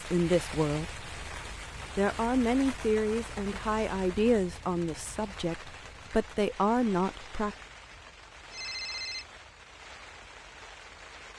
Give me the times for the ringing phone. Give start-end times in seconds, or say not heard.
8.5-9.2.